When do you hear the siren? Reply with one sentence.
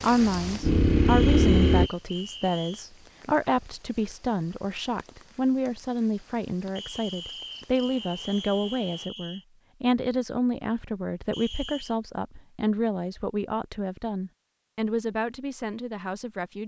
The siren can't be heard in this clip.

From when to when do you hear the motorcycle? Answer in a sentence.
You can hear the motorcycle from 0.2 to 1.9 s.